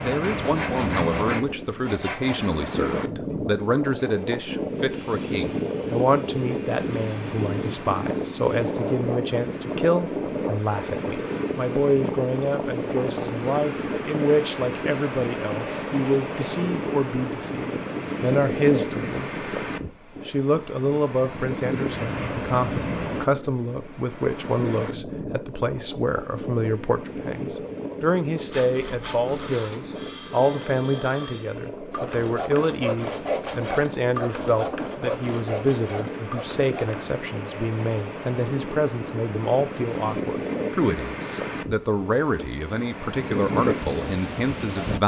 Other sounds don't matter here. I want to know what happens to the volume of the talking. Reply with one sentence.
The loudness of the talking stays about the same.